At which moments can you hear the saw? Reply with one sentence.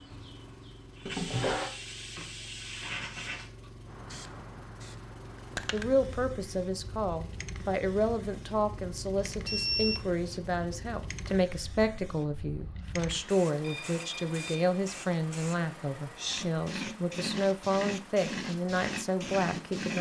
The saw can't be heard in this clip.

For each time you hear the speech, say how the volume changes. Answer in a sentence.
You can hear the speech from 5.7 to 19.9 s, at a steady volume.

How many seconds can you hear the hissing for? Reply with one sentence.
You can hear the hissing for 20 seconds altogether.